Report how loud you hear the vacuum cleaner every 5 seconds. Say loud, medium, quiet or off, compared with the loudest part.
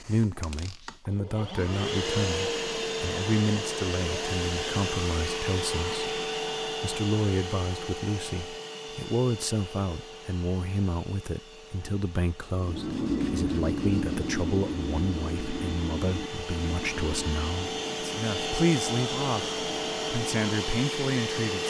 loud, loud, quiet, loud, loud.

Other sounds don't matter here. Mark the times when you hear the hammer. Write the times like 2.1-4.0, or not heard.
not heard.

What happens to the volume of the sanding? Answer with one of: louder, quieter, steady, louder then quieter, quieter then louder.
quieter.